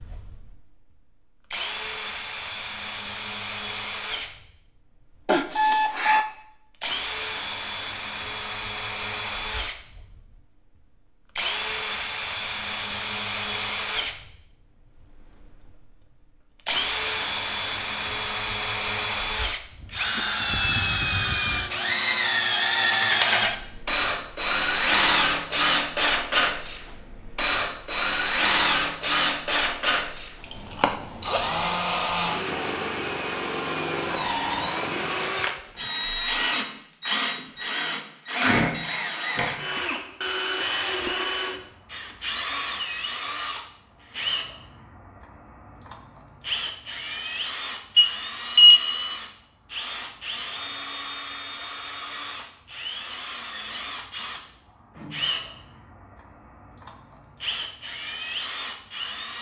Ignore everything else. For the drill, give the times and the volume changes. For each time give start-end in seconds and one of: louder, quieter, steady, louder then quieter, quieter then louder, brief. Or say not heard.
0.0-59.3 louder then quieter.